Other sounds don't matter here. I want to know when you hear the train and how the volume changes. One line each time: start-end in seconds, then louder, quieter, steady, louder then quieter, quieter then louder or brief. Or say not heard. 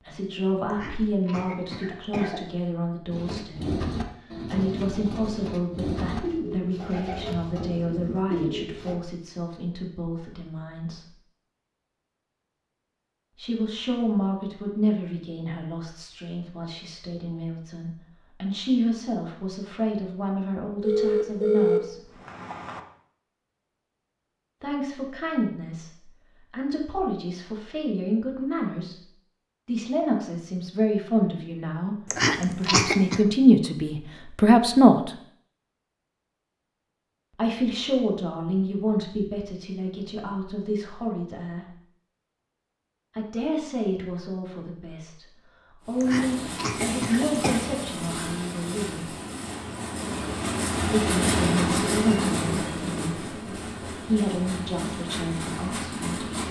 45.9-56.4 louder then quieter.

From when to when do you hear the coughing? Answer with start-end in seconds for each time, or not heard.
0.7-2.5, 32.1-33.2, 46.0-47.6.